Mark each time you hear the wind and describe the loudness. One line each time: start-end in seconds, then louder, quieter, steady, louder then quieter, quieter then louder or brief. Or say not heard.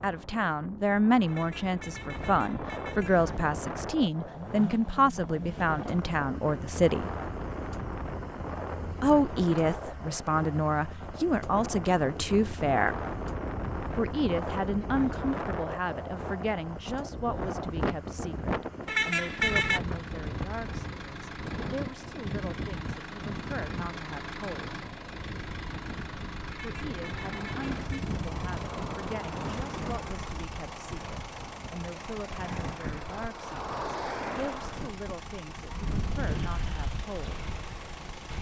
0.0-38.3 steady.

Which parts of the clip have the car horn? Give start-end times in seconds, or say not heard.
1.2-3.2, 18.9-19.8, 26.6-28.1.